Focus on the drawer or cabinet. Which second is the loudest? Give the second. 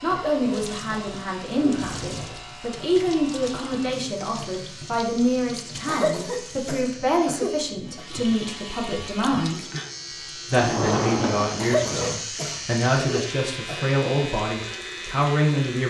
11 s.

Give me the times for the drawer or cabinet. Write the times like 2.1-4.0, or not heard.
1.6-2.5, 10.6-11.8.